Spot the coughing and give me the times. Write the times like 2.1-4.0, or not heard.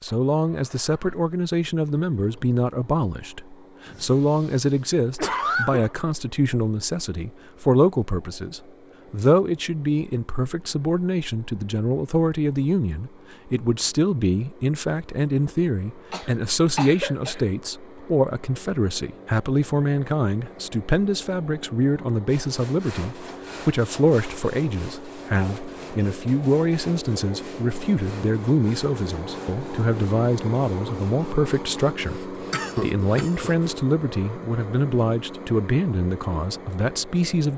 3.9-6.0, 16.1-17.4, 32.5-33.5.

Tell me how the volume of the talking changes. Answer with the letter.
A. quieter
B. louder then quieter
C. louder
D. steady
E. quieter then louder
D.